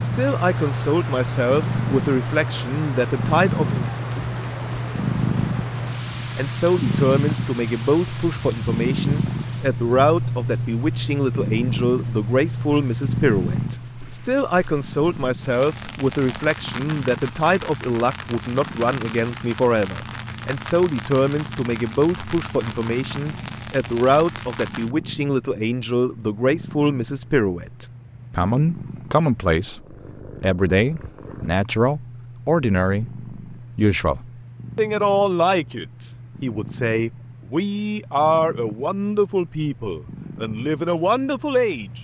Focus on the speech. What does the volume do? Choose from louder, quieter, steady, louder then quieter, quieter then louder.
steady.